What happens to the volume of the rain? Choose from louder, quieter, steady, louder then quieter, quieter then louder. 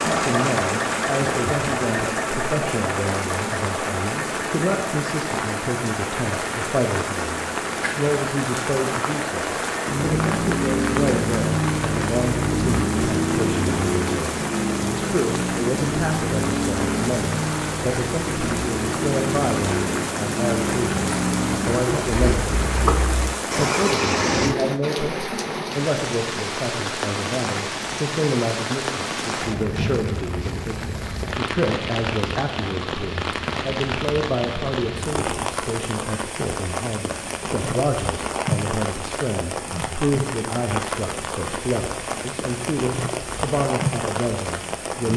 steady.